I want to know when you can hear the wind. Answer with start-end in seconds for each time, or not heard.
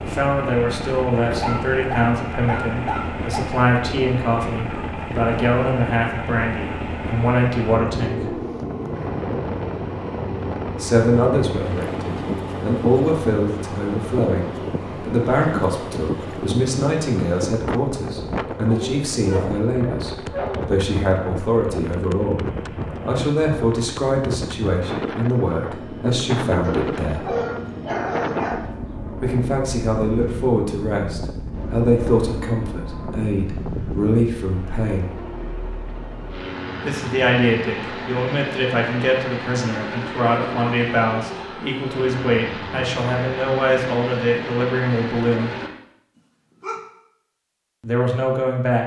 0.0-34.1.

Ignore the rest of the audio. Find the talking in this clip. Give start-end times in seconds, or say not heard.
0.0-8.3, 10.8-27.3, 29.2-35.2, 36.9-45.5, 47.8-48.8.